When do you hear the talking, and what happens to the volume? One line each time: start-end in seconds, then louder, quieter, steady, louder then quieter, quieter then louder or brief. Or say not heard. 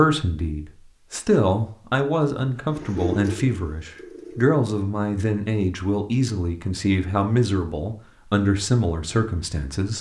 0.0-9.9 steady.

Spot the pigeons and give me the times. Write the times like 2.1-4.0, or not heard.
2.7-4.5.